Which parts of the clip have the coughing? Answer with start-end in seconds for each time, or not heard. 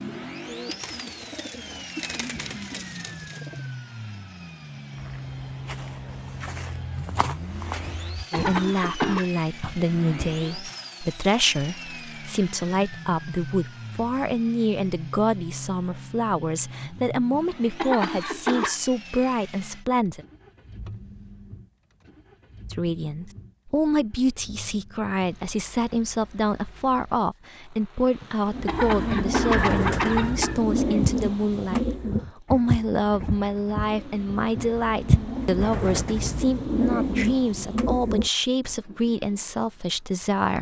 7.8-9.2, 17.3-18.8, 28.2-30.6.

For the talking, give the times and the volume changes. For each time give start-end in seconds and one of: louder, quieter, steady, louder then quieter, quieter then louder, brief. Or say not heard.
8.3-20.2 steady
22.7-40.5 steady.